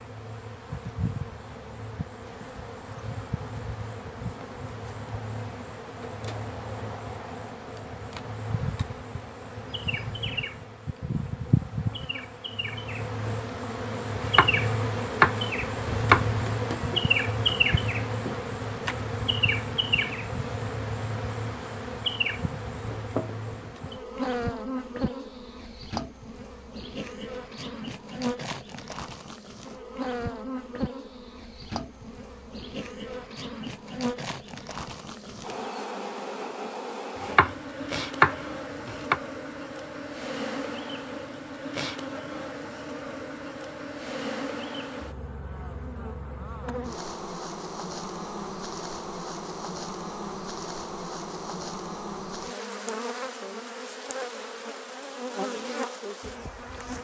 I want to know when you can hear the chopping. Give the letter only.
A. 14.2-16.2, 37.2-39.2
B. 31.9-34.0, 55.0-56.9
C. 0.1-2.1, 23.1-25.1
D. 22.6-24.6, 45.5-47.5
A.